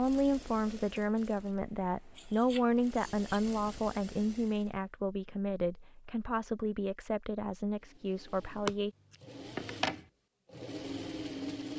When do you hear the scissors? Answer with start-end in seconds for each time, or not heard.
2.1-3.4, 8.7-10.0.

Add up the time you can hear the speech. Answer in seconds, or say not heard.
9 s.